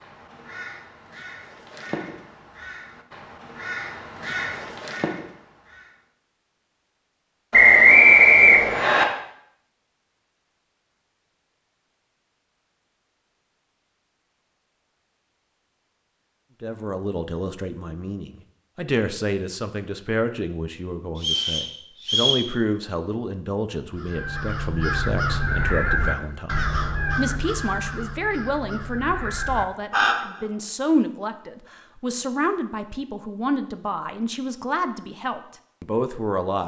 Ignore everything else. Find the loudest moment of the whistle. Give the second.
8 s.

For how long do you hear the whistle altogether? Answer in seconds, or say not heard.
3 s.